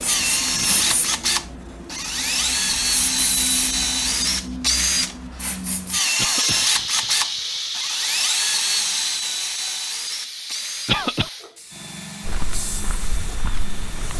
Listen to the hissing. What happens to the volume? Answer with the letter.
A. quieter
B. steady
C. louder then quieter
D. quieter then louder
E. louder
C.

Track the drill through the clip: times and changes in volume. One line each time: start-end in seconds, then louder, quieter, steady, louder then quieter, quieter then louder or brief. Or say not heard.
0.0-14.1 quieter.